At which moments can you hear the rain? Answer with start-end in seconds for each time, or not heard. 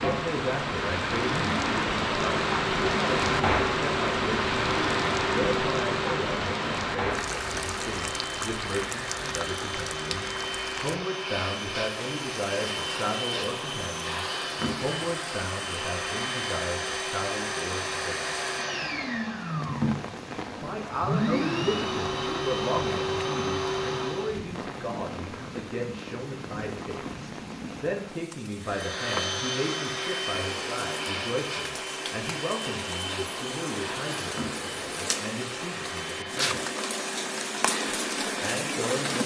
0.0-39.2.